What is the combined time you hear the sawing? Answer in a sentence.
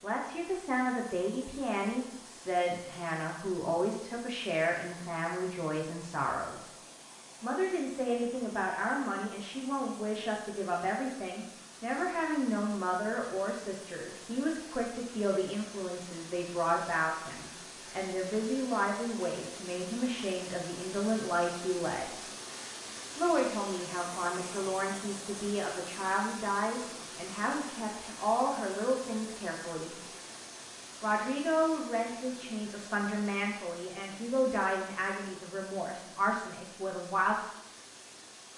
The sawing can't be heard in this clip.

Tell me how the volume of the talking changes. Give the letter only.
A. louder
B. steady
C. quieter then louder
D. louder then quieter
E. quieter
B.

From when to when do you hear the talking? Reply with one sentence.
You can hear the talking from 0.0 to 6.7 s, from 7.4 to 22.1 s, from 23.1 to 30.0 s and from 31.0 to 37.4 s.